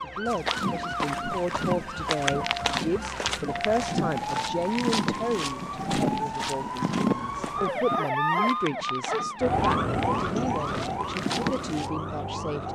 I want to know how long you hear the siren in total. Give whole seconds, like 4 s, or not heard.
13 s.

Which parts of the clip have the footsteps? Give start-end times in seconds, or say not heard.
0.2-11.9.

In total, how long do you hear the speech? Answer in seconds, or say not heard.
13 s.